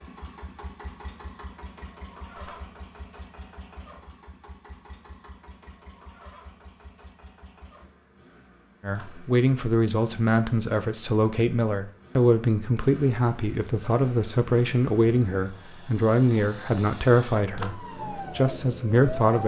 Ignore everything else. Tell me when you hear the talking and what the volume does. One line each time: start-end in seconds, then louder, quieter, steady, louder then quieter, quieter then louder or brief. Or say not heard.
8.8-19.4 steady.